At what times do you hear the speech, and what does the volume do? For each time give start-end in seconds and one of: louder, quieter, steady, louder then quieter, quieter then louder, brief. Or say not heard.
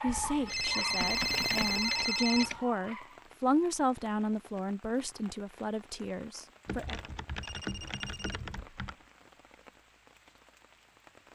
0.0-7.0 louder then quieter.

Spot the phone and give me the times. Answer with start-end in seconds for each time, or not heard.
0.5-2.5, 7.4-8.4.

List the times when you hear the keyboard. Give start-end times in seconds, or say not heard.
0.1-2.6, 6.7-8.9.